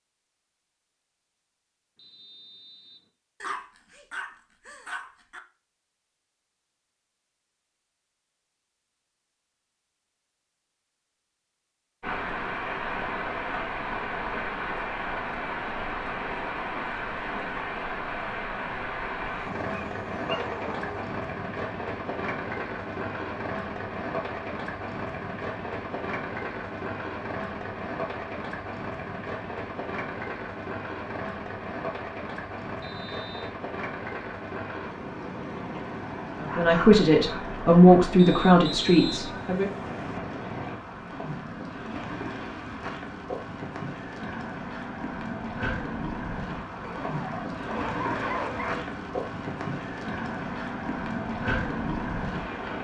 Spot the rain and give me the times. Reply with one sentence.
You can hear the rain from 12.0 to 52.7 s.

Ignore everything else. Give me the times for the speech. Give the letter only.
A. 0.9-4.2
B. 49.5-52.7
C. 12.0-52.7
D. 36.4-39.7
D.